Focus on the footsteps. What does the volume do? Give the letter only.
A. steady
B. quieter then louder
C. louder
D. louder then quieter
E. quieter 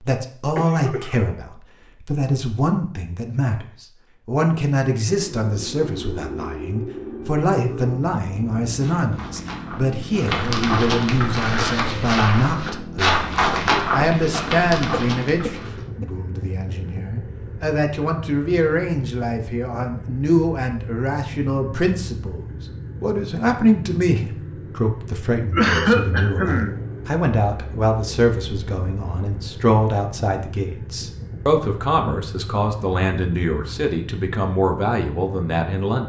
D.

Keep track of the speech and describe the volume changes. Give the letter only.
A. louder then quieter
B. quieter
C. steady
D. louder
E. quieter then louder
C.